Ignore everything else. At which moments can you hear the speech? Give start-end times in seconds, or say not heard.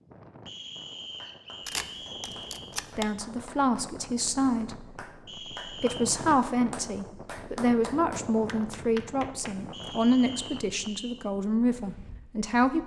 3.0-5.0, 5.7-12.8.